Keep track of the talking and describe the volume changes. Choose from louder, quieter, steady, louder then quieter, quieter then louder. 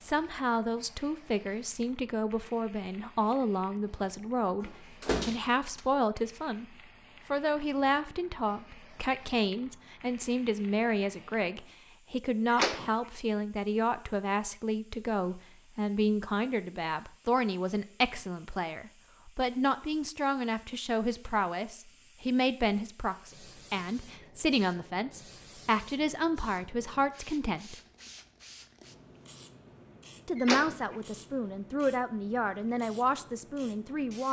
steady.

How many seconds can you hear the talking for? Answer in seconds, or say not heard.
32 s.